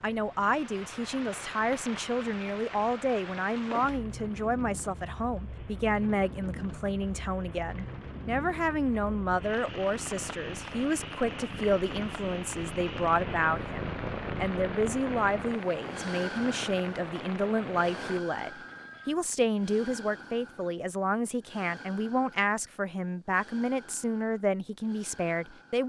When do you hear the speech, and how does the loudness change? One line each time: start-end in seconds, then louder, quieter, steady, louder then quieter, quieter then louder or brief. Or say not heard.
0.0-25.8 steady.